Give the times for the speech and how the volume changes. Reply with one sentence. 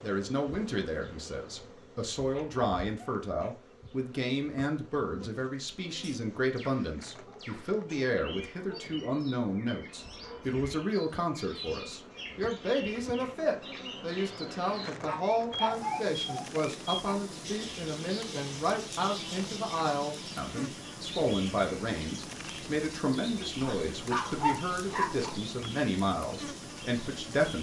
The speech can be heard from 0.0 to 27.5 s, at a steady volume.